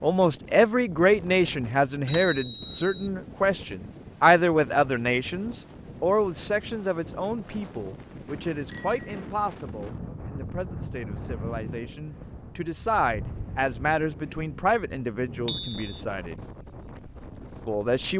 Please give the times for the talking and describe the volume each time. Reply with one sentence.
You can hear the talking from 0.0 to 16.4 s, getting quieter then louder; and briefly from 17.6 to 18.1 s.